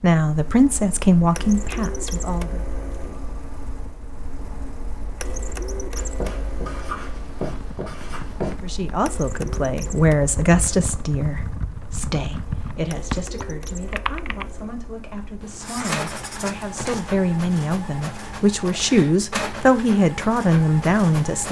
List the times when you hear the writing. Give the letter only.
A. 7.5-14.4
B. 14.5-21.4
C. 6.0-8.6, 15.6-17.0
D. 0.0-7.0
C.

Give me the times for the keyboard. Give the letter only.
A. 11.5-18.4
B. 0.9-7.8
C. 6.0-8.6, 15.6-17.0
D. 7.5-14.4
D.